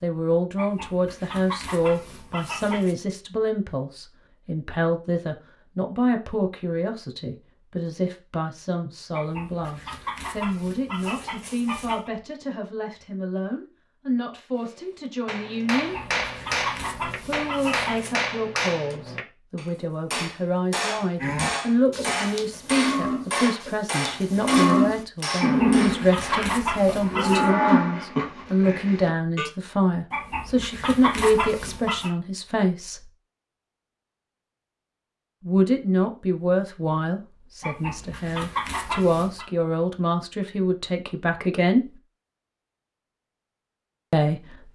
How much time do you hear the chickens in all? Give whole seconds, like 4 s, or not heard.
14 s.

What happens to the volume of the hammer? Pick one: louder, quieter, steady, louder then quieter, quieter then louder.
steady.